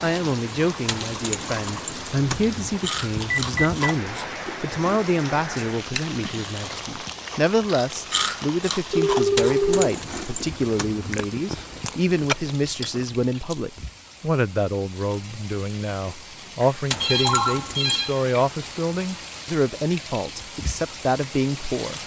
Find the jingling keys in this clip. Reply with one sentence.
You can hear the jingling keys from 0.8 to 2.7 s, from 9.3 to 11.2 s and from 16.9 to 18.1 s.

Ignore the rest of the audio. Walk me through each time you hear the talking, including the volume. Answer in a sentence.
The talking can be heard from 0.0 to 22.0 s, at a steady volume.